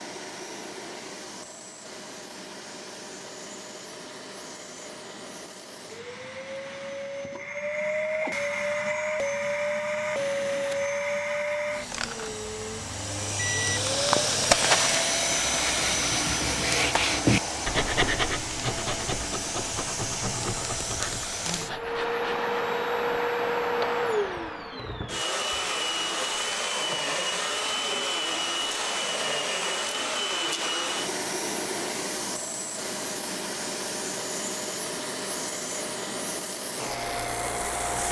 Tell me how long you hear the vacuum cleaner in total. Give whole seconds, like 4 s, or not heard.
38 s.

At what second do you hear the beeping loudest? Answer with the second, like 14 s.
15 s.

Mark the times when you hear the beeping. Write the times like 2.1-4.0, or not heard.
13.3-15.1.